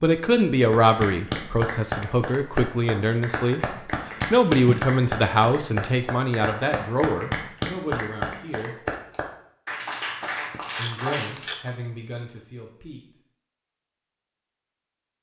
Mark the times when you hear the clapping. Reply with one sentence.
You can hear the clapping from 0.7 to 11.6 s.